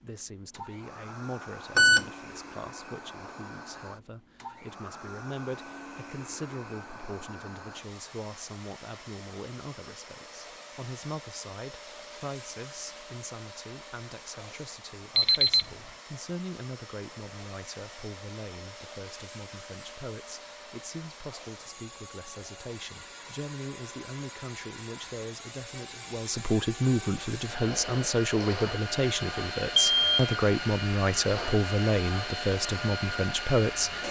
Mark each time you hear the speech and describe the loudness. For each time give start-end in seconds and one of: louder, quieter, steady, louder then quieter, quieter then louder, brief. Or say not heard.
0.0-34.0 louder.